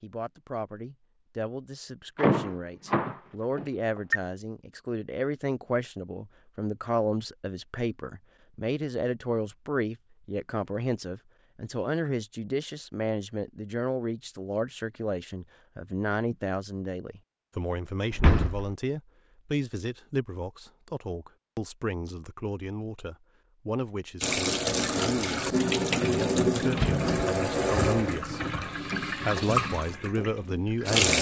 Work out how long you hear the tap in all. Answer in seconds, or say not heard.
7 s.